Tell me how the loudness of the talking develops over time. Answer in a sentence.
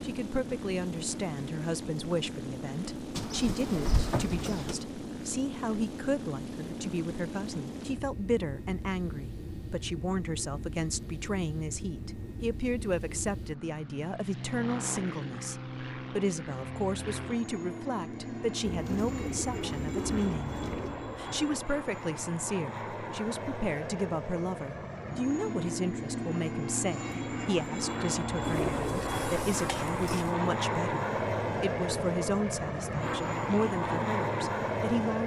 The volume of the talking stays about the same.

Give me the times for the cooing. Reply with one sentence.
You can hear the cooing from 3.1 to 4.8 s, from 18.6 to 21.0 s and from 28.4 to 30.3 s.